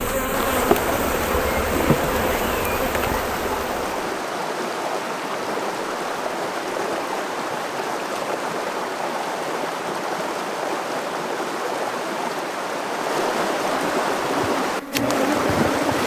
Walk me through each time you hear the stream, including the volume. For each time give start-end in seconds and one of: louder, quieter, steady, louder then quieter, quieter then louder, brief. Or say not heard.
0.1-16.0 steady.